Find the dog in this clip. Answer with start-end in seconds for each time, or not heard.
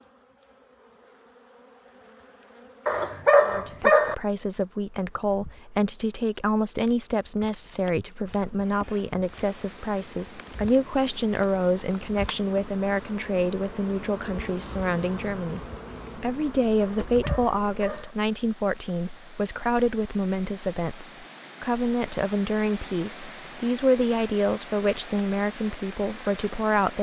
2.9-4.2, 17.0-18.1.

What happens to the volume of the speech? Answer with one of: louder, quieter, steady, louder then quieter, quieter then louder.
steady.